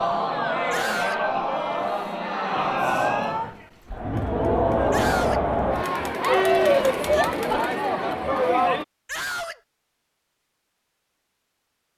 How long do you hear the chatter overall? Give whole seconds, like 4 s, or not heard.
9 s.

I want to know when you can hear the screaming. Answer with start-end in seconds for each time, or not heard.
0.7-1.2, 4.9-5.5, 9.1-9.6.